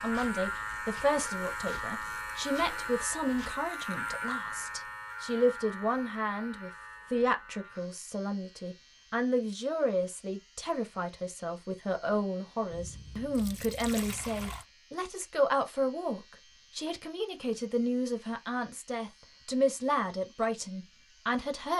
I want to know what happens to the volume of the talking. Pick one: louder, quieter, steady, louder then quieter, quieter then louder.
steady.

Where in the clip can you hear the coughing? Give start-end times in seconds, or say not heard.
not heard.